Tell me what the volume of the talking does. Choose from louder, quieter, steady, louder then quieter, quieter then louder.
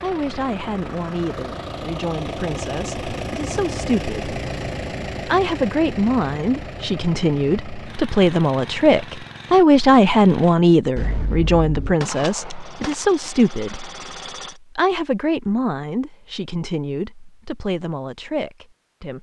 louder then quieter.